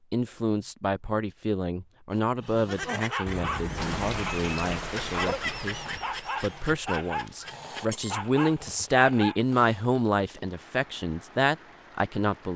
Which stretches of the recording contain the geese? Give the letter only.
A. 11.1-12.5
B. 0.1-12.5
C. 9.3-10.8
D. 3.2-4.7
D.